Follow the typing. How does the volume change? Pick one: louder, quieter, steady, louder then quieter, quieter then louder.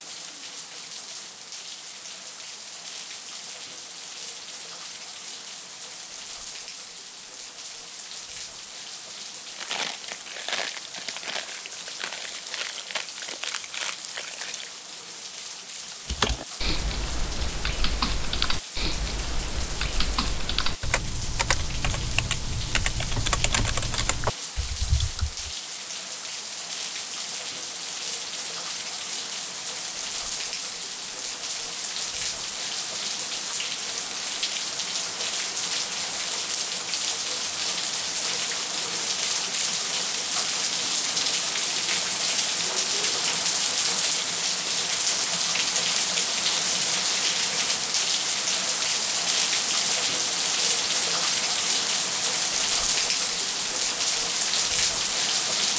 steady.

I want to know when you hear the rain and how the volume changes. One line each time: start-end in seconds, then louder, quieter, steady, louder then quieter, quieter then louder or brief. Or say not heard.
0.0-55.7 louder.